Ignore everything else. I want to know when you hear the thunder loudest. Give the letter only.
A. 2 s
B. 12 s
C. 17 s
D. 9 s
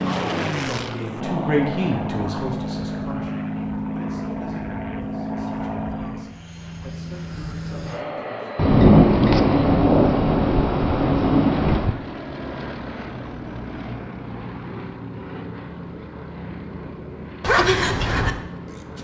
D.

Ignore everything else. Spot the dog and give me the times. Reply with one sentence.
The dog can be heard from 17.4 to 18.4 s.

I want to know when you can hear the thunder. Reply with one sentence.
You can hear the thunder from 8.6 to 11.9 s.